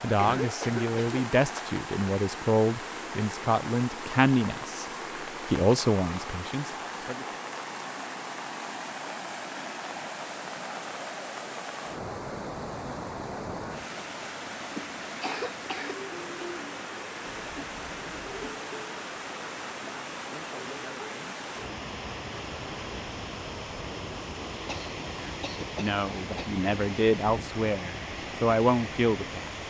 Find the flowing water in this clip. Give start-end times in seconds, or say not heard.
0.0-29.6.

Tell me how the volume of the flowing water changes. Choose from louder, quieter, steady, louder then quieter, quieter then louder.
steady.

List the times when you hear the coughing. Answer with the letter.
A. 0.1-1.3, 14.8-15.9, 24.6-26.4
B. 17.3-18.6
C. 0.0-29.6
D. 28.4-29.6
A.